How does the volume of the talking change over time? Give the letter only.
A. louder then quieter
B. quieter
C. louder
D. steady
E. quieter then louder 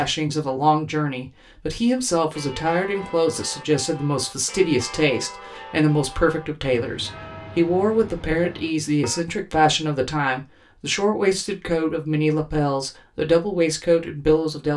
D.